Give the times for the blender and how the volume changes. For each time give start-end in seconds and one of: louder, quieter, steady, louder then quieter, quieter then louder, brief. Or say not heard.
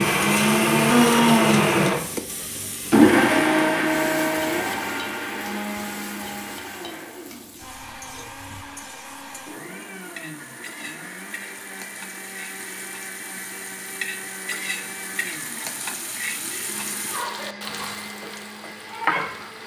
0.0-19.6 quieter.